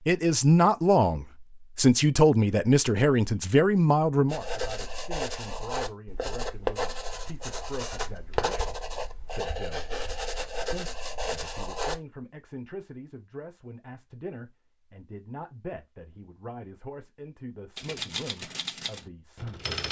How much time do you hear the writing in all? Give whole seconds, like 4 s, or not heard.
8 s.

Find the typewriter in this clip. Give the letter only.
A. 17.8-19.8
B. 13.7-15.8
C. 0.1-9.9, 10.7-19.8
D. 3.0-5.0
A.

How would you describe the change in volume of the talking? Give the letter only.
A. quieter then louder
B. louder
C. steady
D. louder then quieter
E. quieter
E.